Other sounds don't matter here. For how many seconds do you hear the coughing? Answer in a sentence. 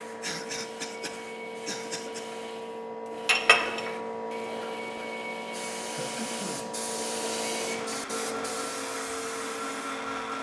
You can hear the coughing for 3 seconds altogether.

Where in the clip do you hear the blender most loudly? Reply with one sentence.
The volume of the blender peaks at 10 seconds.